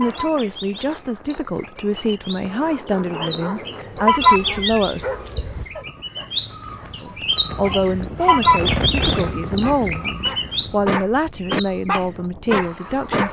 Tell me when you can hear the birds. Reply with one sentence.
You can hear the birds from 0.0 to 13.2 s.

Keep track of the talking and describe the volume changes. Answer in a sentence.
The loudness of the talking stays about the same.